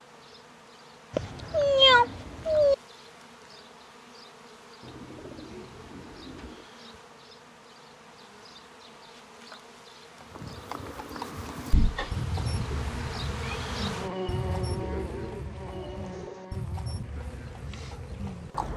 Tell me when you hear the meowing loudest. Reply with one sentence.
The volume of the meowing peaks at 2 seconds.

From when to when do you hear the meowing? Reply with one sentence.
The meowing can be heard from 1.1 to 2.8 s and from 11.7 to 13.6 s.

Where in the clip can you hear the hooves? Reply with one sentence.
The hooves can be heard from 10.2 to 18.7 s.